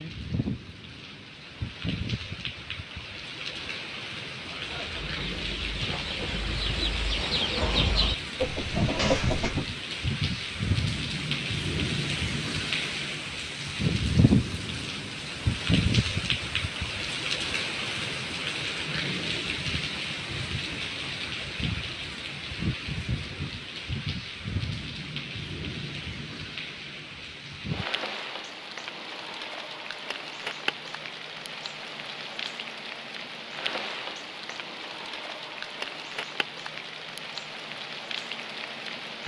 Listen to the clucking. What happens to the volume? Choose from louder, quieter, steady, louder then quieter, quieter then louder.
louder.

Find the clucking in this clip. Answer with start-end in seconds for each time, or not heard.
4.3-9.7.